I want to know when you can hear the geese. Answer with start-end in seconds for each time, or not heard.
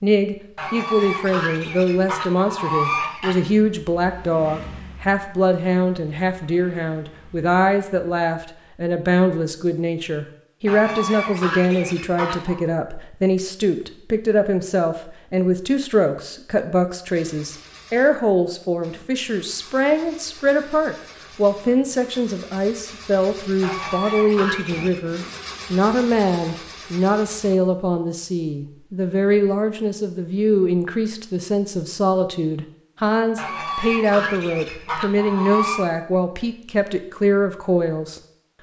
0.6-3.4, 10.7-12.6, 23.6-25.0, 33.4-35.9.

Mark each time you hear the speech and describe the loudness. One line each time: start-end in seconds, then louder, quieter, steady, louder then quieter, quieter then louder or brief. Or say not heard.
0.0-38.2 steady.